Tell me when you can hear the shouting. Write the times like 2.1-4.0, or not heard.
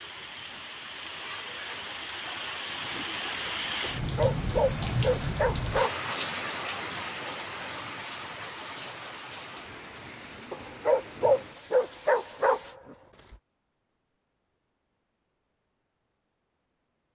not heard.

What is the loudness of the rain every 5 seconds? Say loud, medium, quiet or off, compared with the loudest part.
loud, loud, medium, off.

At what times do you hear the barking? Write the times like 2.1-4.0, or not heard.
4.0-6.2, 10.5-13.3.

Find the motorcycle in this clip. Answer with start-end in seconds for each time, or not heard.
not heard.